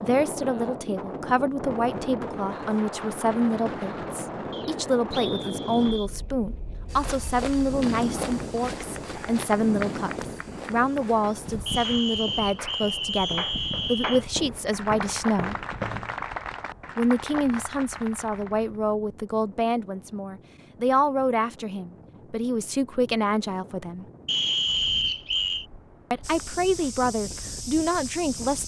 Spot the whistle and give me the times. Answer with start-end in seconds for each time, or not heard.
4.5-6.1, 11.7-14.2, 24.2-25.6.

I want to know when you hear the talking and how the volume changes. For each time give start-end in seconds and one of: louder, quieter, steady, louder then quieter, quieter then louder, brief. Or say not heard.
0.0-15.6 steady
16.9-24.1 steady
26.1-28.6 brief.